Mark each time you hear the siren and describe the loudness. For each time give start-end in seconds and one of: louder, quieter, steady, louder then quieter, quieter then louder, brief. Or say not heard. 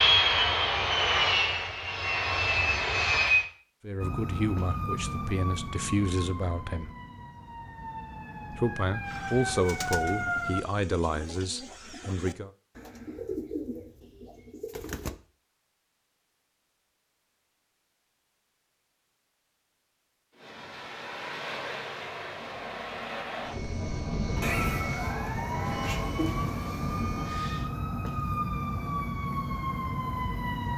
4.0-10.7 quieter then louder
24.1-30.7 steady.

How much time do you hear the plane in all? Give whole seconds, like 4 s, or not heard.
11 s.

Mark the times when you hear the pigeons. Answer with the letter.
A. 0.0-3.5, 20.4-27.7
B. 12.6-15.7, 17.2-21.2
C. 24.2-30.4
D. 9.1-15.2
D.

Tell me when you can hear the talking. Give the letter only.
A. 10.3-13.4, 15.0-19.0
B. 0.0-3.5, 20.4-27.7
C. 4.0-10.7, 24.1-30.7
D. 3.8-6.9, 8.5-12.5
D.